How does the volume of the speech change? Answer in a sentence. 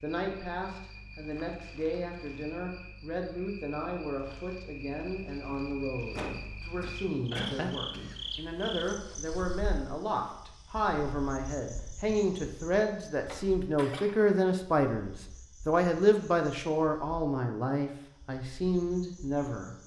The loudness of the speech goes up.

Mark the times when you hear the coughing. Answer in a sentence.
You can hear the coughing from 6.2 to 8.2 s and from 13.2 to 14.2 s.